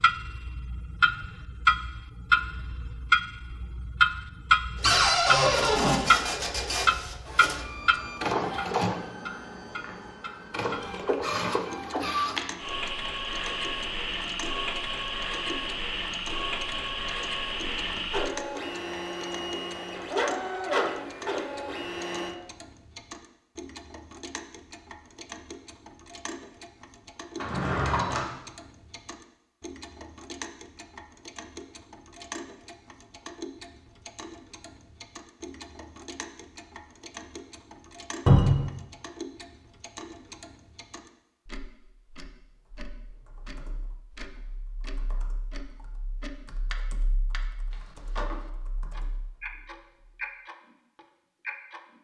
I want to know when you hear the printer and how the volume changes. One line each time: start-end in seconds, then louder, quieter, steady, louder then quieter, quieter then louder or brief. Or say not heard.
4.8-22.4 steady.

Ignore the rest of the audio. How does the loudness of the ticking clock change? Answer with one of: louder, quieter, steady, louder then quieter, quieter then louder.
quieter.